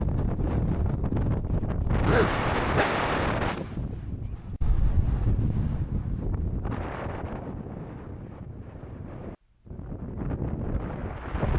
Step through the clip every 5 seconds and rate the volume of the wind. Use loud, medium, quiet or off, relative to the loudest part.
loud, medium, loud.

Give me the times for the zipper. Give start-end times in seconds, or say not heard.
2.0-2.9.